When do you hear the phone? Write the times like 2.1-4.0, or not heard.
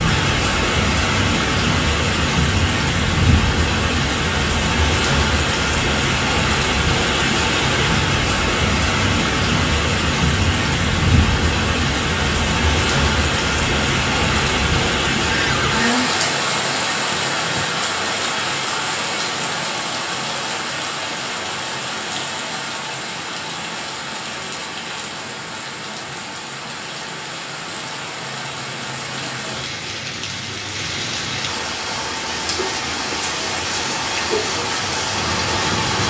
15.2-15.8.